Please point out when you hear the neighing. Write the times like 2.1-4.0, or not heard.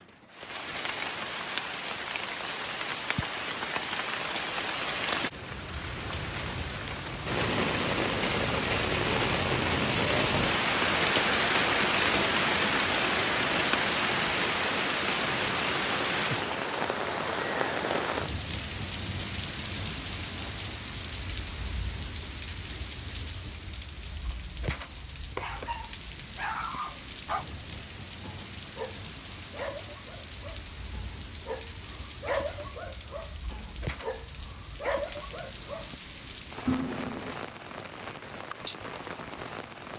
36.6-37.4.